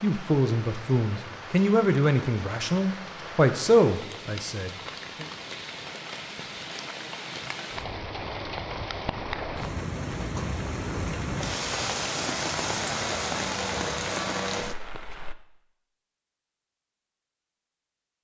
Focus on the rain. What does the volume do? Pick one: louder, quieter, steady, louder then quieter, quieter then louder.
louder.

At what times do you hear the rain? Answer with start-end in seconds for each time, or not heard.
0.0-15.3.